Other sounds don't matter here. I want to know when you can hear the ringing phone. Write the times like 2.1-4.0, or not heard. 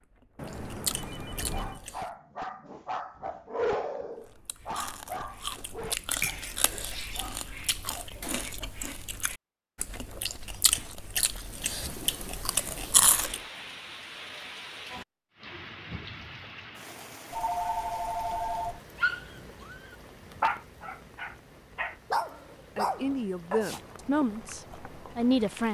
0.3-1.8, 17.3-18.8.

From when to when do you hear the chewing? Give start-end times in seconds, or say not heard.
0.0-2.1, 4.2-13.4, 22.9-25.6.